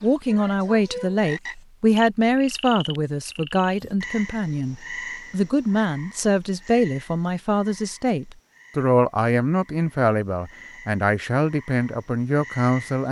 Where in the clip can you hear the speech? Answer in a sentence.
The speech can be heard from 0.0 to 13.0 s.